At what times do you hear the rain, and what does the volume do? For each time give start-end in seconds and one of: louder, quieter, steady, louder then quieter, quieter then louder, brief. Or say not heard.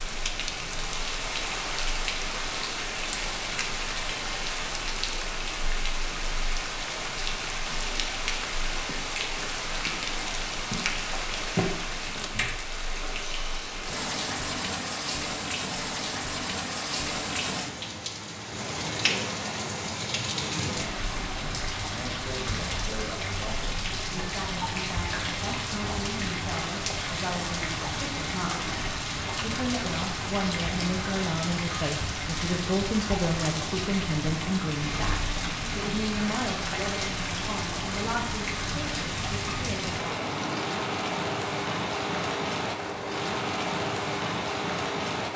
0.0-45.3 steady.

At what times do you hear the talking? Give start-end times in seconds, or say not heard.
20.6-40.0.